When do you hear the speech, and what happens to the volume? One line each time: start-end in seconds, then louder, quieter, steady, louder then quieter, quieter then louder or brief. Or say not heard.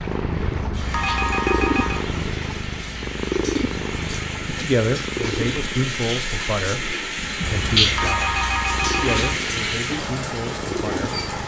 4.5-11.2 quieter.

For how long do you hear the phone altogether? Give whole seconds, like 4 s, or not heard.
4 s.